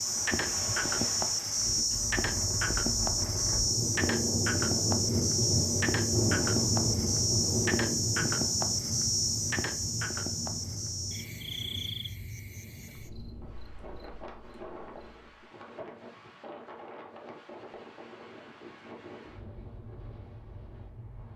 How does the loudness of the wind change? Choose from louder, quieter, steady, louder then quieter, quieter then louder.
louder then quieter.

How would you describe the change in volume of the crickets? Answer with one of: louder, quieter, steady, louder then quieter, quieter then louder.
quieter.